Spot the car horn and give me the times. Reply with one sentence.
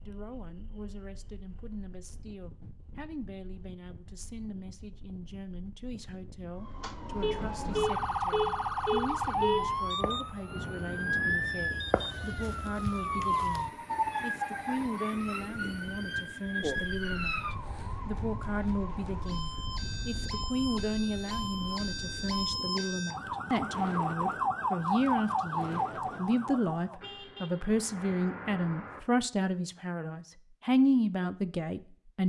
You can hear the car horn from 7.2 to 9.9 s and from 27.0 to 29.0 s.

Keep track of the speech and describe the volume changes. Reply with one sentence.
The volume of the speech goes up.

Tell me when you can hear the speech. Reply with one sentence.
You can hear the speech from 0.1 to 32.2 s.